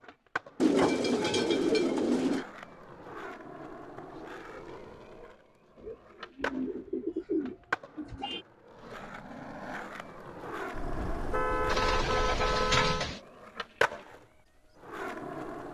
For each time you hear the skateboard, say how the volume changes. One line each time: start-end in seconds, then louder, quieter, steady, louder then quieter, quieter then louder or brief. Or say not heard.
0.0-15.6 louder.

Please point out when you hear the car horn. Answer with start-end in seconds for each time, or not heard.
10.7-13.1.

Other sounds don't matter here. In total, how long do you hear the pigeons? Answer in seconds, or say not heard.
6 s.